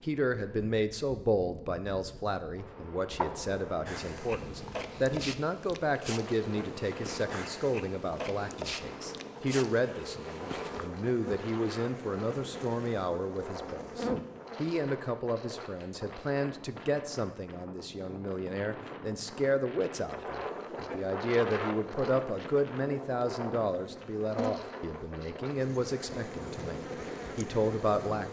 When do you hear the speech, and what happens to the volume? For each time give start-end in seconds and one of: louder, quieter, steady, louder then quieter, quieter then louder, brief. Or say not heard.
0.0-28.2 steady.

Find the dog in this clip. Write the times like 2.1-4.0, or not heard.
not heard.